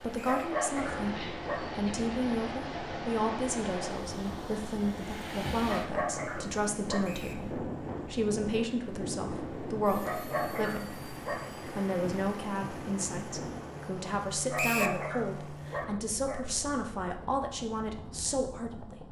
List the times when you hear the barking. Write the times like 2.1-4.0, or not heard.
0.2-1.7, 5.7-7.2, 10.0-11.7, 14.5-16.4.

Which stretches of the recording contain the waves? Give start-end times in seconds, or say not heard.
0.0-13.8.